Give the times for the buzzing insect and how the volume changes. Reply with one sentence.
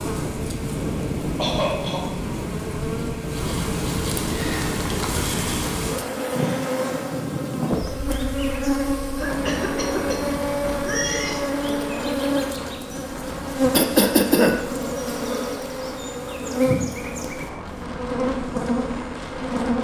You can hear the buzzing insect from 0.0 to 19.7 s, getting louder.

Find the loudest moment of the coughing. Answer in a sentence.
The volume of the coughing peaks at 14 seconds.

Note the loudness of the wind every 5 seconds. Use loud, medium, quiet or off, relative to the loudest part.
loud, loud, medium, medium.